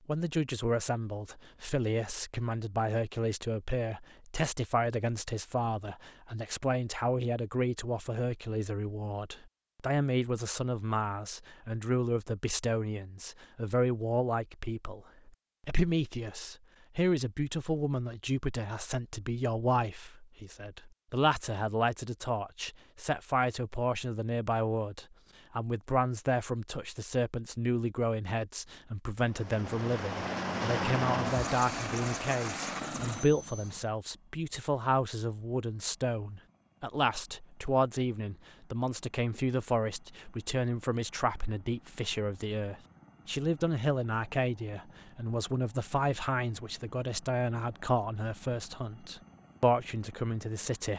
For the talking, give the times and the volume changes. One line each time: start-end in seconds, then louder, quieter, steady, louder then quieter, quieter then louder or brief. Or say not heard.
0.1-50.9 steady.